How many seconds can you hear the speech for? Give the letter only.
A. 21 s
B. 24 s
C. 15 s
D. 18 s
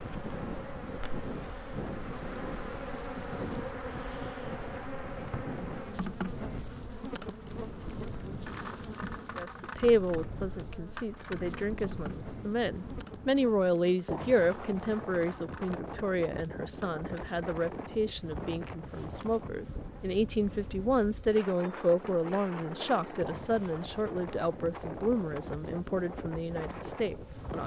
D.